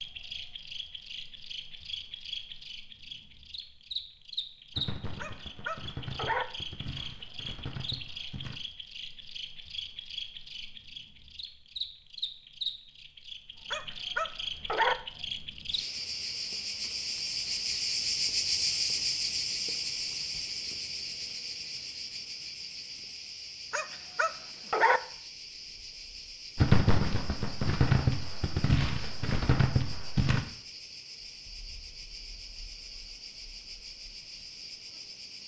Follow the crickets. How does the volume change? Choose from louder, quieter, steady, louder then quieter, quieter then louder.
louder then quieter.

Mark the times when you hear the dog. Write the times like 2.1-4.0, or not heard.
5.2-6.5, 13.7-14.9, 23.7-25.0.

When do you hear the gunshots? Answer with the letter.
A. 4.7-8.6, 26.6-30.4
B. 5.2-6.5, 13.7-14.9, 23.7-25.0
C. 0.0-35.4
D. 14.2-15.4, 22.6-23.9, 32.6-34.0
A.